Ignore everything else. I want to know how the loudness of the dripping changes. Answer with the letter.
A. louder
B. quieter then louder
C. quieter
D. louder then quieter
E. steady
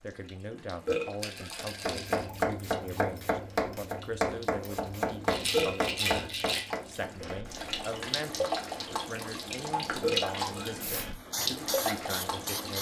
A.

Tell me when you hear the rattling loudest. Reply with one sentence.
The volume of the rattling peaks at 6 seconds.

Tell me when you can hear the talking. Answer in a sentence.
You can hear the talking from 0.0 to 12.7 s.